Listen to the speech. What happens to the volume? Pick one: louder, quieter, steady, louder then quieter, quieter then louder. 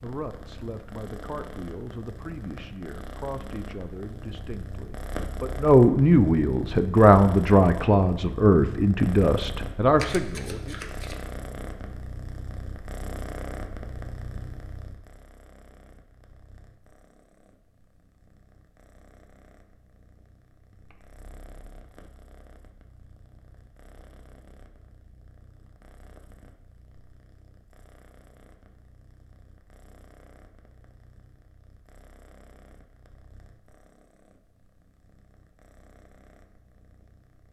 louder.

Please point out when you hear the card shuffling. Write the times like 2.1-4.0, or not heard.
9.9-11.2.